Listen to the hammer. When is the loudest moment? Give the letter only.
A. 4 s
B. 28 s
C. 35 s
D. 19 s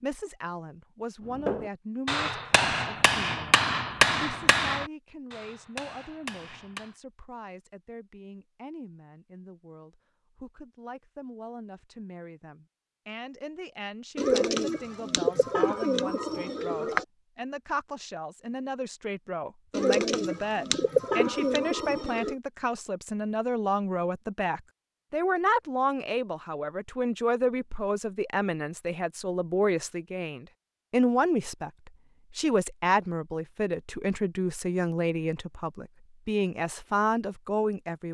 A.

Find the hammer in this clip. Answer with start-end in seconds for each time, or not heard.
1.4-7.0.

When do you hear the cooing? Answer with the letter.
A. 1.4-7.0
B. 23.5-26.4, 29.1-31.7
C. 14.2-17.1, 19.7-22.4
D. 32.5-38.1
C.